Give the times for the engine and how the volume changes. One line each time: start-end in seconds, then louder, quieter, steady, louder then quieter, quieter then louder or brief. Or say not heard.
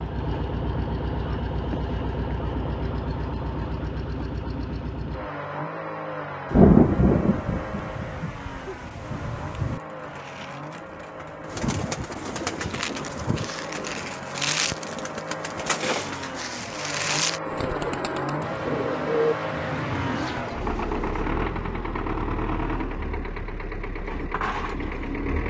0.0-25.4 quieter then louder.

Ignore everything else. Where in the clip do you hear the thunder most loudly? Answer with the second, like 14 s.
7 s.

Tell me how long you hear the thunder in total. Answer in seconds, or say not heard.
5 s.